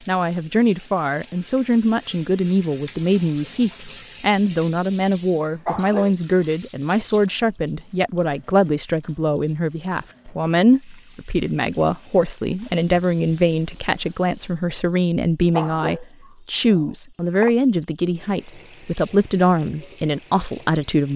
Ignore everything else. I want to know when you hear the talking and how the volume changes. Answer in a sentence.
The talking can be heard from 0.1 to 21.1 s, at a steady volume.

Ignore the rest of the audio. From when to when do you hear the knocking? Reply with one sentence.
You can't hear the knocking here.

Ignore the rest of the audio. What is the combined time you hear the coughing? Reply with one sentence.
The coughing can be heard for 2 seconds in total.